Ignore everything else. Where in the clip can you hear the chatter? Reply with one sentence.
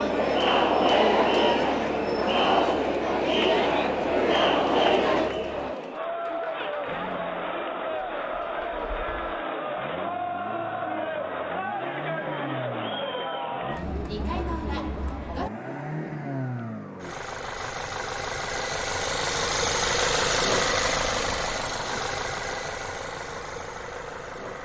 You can hear the chatter from 0.0 to 15.5 s.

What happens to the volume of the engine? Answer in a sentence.
The loudness of the engine goes up.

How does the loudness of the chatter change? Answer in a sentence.
The loudness of the chatter goes down.